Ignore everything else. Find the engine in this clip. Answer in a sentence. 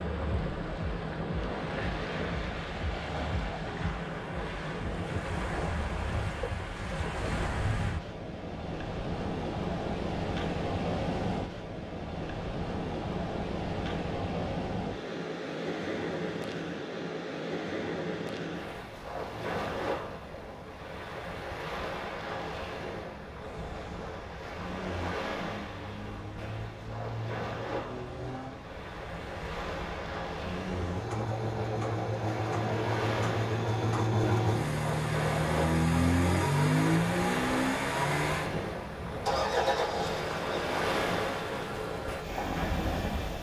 The engine can be heard from 23.4 to 43.3 s.